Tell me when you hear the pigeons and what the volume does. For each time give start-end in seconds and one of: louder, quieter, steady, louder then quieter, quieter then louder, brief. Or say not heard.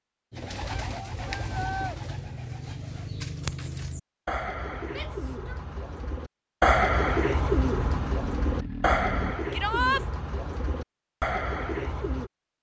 0.3-12.3 louder then quieter.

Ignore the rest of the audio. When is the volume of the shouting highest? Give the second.
10 s.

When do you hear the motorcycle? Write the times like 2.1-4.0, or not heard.
7.6-9.3.